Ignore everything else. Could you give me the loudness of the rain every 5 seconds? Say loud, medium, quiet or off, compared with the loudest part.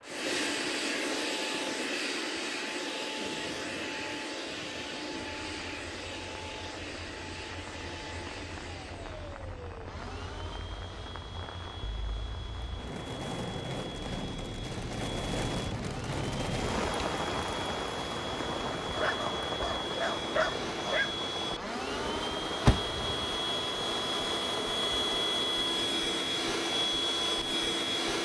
quiet, quiet, medium, loud, medium, medium.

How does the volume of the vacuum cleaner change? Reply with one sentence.
The loudness of the vacuum cleaner goes down, then up.